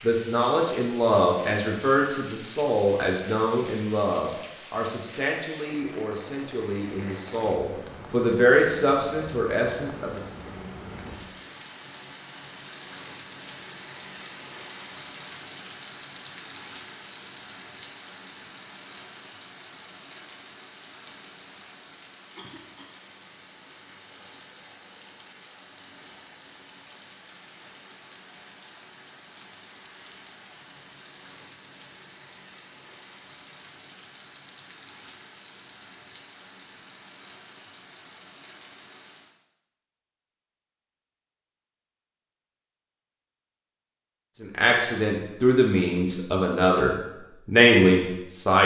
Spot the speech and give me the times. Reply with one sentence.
You can hear the speech from 0.0 to 10.3 s and from 44.4 to 48.6 s.